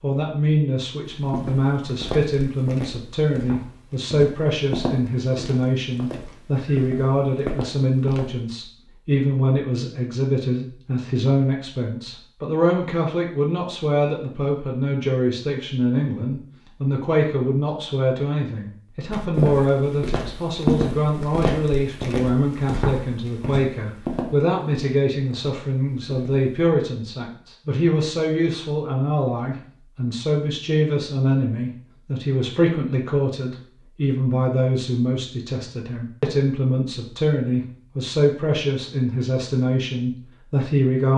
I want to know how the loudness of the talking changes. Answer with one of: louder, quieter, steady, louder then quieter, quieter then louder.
steady.